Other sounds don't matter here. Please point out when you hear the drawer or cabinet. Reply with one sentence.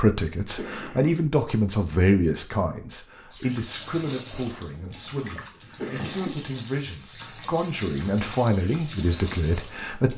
You can't hear the drawer or cabinet here.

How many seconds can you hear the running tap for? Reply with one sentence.
The running tap can be heard for 7 seconds in total.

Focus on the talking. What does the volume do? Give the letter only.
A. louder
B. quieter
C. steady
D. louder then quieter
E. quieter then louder
E.